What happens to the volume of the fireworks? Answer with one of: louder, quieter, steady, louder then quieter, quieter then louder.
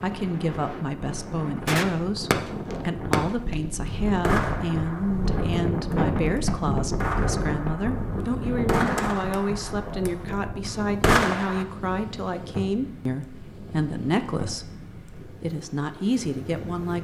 quieter then louder.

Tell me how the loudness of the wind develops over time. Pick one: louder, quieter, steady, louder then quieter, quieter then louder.
louder then quieter.